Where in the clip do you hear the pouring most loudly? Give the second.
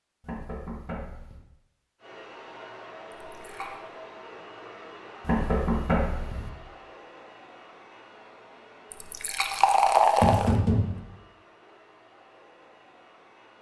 10 s.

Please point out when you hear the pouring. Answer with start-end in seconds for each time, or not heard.
3.1-3.8, 8.9-10.6.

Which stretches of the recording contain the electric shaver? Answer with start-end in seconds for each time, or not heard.
not heard.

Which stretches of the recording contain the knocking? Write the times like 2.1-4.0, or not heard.
0.2-1.4, 5.2-6.5, 10.2-11.0.